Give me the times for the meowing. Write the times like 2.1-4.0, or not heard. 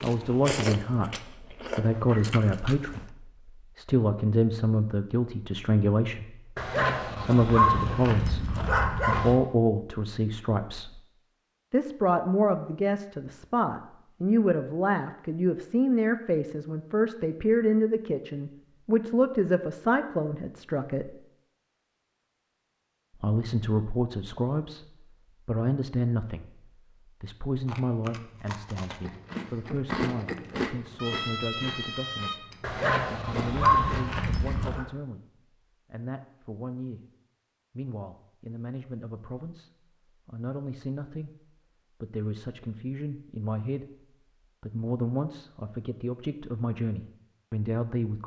30.9-32.4.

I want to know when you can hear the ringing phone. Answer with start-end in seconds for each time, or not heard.
not heard.